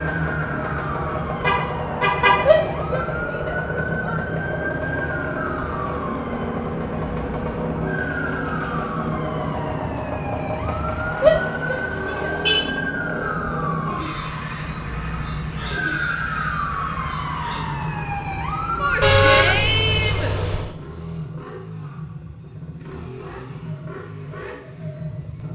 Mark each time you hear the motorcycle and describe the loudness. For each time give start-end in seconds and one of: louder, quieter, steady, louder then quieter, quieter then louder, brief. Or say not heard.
0.0-25.5 quieter.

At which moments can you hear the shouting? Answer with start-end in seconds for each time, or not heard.
2.5-4.2, 11.2-12.3, 18.8-20.4.